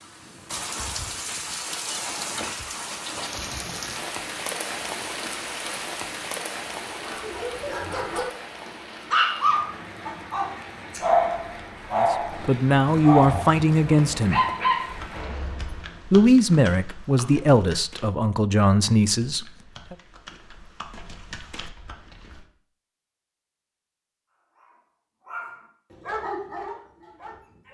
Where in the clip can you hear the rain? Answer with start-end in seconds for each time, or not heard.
0.0-15.4.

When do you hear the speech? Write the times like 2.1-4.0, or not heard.
11.9-14.4, 16.1-19.9.